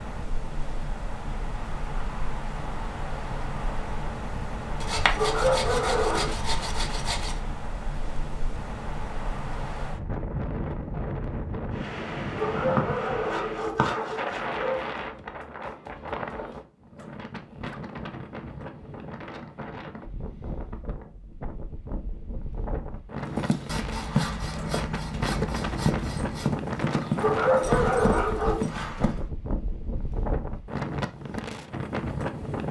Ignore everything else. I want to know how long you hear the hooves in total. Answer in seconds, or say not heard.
6 s.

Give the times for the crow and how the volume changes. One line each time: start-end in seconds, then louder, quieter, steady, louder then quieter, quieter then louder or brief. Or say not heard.
not heard.